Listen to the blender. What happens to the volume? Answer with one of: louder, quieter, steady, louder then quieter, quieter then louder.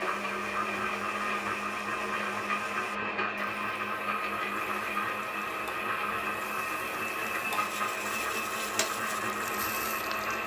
steady.